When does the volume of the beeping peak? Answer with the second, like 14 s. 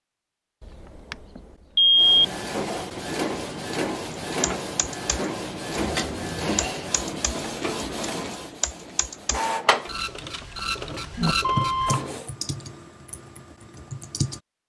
2 s.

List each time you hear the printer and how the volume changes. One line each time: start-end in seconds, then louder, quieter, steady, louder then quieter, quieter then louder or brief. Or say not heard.
1.9-12.3 steady.